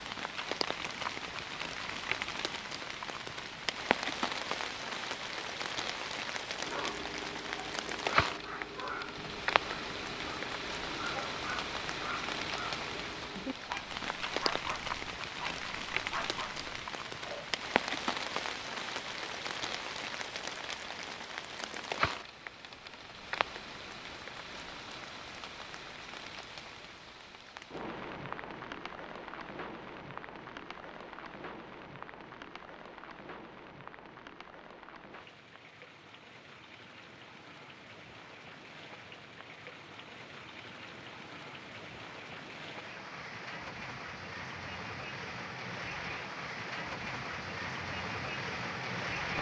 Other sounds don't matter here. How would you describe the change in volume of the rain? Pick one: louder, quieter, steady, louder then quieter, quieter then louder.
quieter then louder.